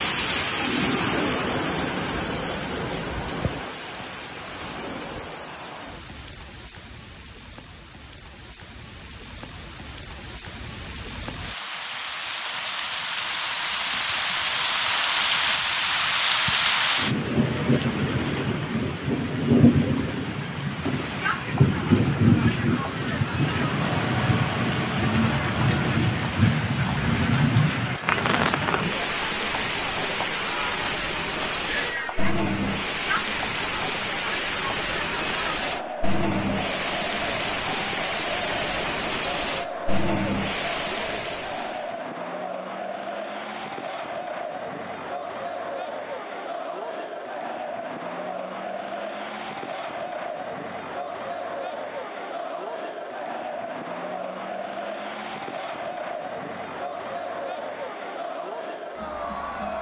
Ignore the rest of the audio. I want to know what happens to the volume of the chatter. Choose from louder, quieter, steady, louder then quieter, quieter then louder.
steady.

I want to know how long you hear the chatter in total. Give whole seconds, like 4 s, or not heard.
39 s.